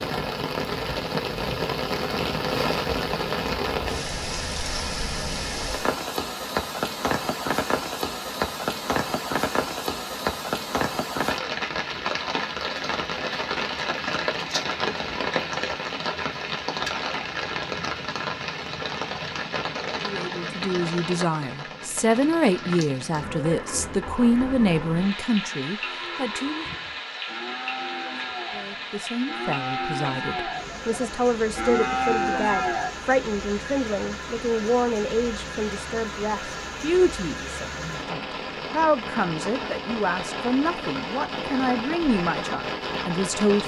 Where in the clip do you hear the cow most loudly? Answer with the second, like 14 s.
32 s.